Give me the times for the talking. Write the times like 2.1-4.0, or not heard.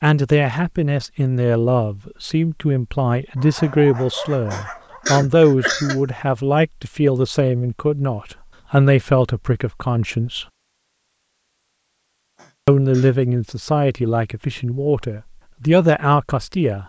0.0-10.4, 12.7-16.8.